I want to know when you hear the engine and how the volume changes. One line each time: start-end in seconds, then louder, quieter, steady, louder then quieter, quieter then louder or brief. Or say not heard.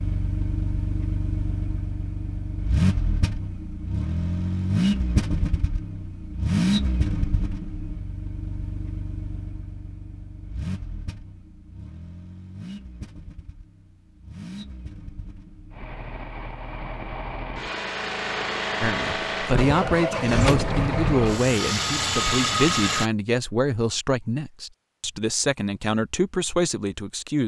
0.0-23.1 quieter then louder.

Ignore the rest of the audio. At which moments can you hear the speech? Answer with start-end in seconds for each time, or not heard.
18.8-27.4.